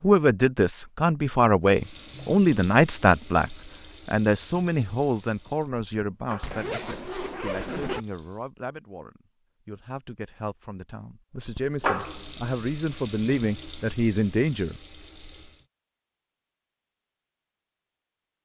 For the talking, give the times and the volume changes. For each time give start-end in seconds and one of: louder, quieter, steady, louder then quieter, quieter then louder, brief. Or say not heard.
0.0-14.8 quieter then louder.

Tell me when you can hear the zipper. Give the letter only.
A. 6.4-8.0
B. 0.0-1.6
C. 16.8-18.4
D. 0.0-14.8
A.